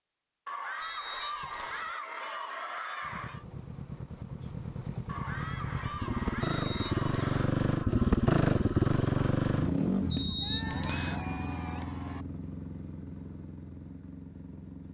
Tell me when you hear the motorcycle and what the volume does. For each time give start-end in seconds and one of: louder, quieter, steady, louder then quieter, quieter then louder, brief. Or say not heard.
3.0-14.9 louder then quieter.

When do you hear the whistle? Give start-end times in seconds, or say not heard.
0.8-1.9, 6.4-7.5, 10.1-11.2.